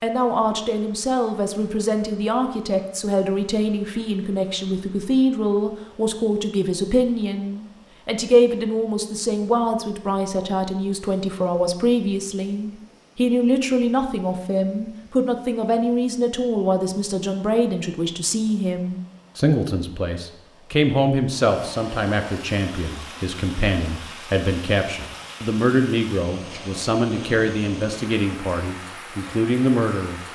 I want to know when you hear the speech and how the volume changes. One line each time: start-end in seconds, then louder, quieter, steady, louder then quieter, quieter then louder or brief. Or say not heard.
0.0-30.2 steady.